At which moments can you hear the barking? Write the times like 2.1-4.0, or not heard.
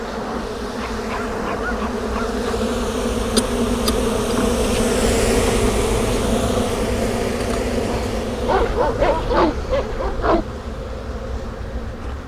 0.8-2.6, 8.4-10.4.